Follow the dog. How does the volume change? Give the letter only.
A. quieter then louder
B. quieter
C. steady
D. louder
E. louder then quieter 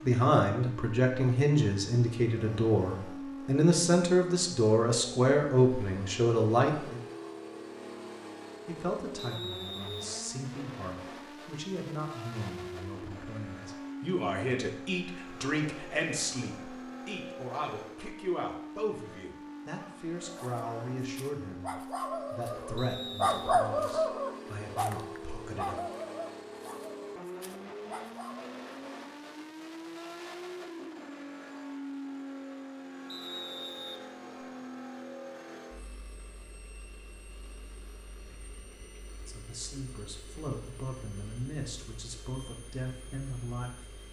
E.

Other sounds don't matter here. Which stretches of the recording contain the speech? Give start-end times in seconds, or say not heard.
0.0-7.0, 8.7-25.8, 39.2-44.0.